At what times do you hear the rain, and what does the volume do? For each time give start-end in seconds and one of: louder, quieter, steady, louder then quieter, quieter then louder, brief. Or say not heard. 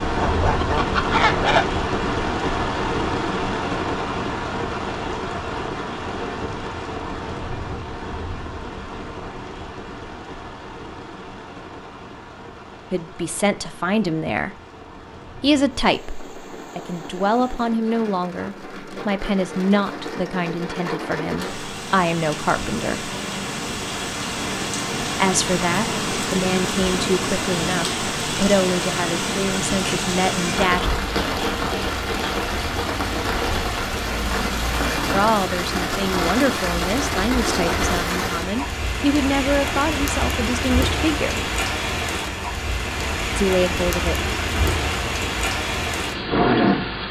0.0-47.0 quieter then louder.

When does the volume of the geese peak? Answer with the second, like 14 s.
1 s.